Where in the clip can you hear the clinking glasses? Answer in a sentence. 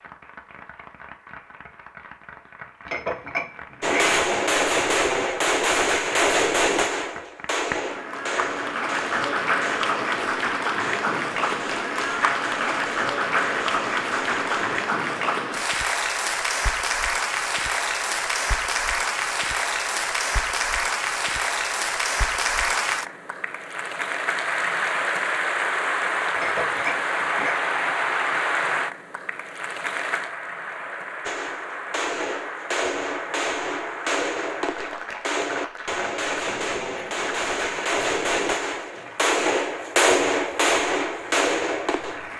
You can hear the clinking glasses from 2.9 to 4.3 s and from 26.4 to 27.6 s.